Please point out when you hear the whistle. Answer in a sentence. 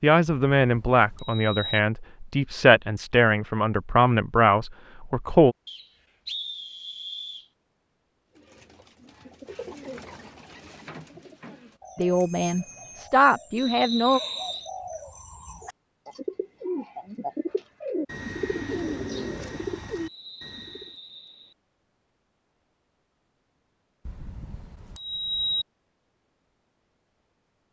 The whistle can be heard from 5.7 to 7.5 s, from 13.6 to 14.7 s and from 20.1 to 21.6 s.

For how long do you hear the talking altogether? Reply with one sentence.
The talking can be heard for 8 seconds in total.